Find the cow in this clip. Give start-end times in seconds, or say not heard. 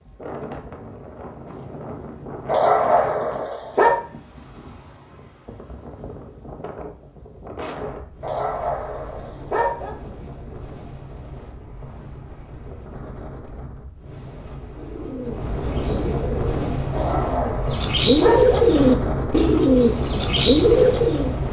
not heard.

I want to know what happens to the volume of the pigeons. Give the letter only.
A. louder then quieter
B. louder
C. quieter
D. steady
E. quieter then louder
B.